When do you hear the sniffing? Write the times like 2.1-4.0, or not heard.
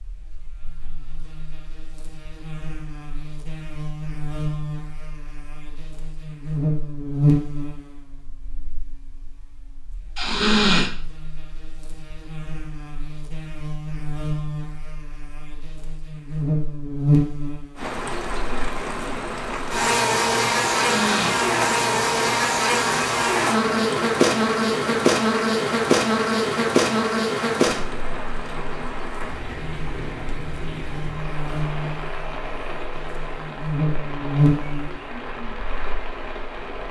10.2-10.9, 20.9-21.4.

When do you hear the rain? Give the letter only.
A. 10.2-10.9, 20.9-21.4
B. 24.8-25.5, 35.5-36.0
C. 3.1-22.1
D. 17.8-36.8
D.